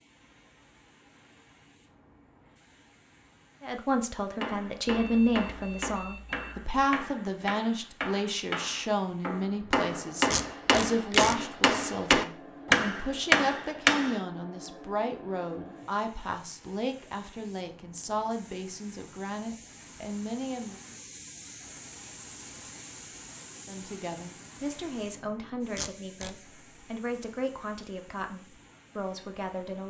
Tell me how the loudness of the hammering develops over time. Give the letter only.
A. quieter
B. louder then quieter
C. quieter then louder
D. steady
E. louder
E.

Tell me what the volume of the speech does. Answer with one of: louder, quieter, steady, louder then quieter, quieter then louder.
quieter.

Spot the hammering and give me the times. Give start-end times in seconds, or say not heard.
4.4-14.2.